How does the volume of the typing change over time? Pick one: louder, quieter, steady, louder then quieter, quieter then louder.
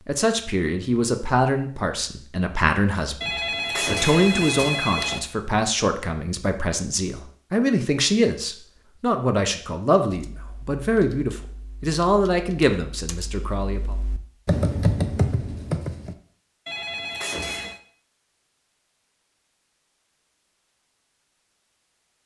louder.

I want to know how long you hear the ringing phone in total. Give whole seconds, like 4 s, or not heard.
3 s.